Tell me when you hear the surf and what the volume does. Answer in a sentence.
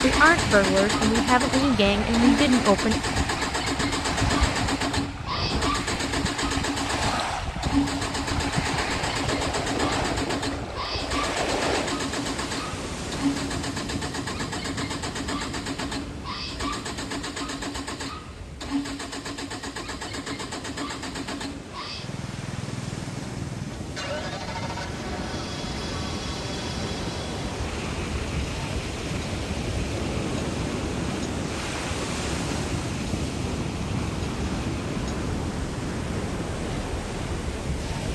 You can hear the surf from 0.0 to 38.1 s, getting quieter then louder.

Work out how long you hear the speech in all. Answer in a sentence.
You can hear the speech for 3 seconds altogether.